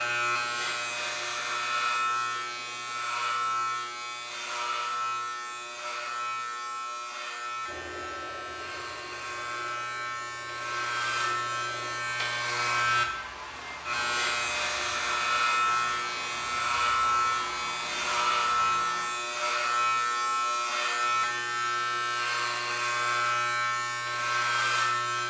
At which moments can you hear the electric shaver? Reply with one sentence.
You can hear the electric shaver from 0.0 to 25.2 s.